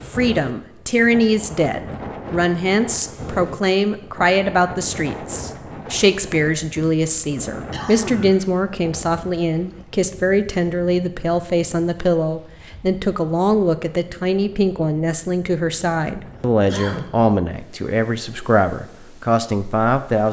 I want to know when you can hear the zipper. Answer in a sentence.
The zipper can't be heard in this clip.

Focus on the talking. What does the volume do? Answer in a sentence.
The loudness of the talking stays about the same.